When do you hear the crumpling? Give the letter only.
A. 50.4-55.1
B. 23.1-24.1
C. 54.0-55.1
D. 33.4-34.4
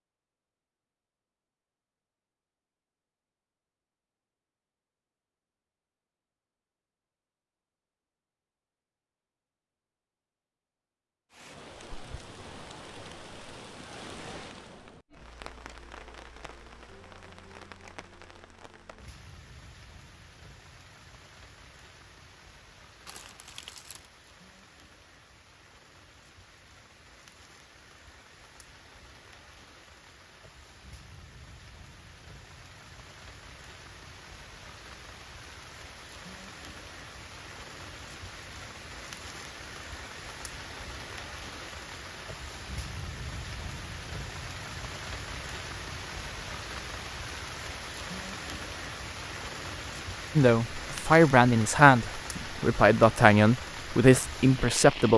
B.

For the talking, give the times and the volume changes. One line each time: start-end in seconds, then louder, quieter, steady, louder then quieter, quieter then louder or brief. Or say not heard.
50.4-55.1 steady.